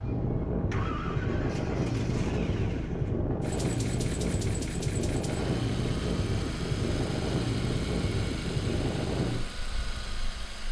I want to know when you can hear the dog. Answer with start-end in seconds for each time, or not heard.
not heard.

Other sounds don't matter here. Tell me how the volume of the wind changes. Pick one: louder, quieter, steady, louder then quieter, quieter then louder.
steady.